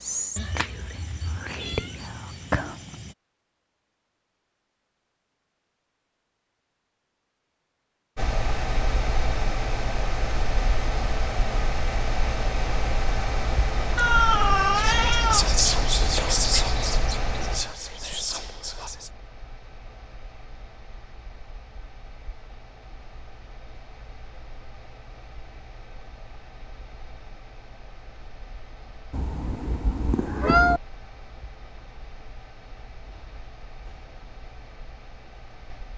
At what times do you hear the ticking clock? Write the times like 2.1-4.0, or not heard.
not heard.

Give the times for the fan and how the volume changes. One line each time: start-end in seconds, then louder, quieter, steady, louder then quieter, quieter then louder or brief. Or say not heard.
8.2-35.9 quieter.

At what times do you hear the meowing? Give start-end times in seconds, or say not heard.
0.3-3.1, 13.9-15.9, 29.1-30.8.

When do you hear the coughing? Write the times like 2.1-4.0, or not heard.
not heard.